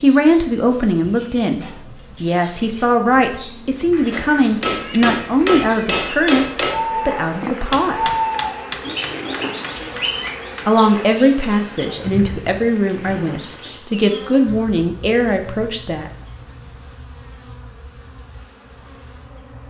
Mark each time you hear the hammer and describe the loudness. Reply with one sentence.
The hammer can be heard from 4.1 to 10.7 s, getting quieter.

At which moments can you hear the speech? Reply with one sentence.
The speech can be heard from 0.0 to 8.1 s and from 10.7 to 16.1 s.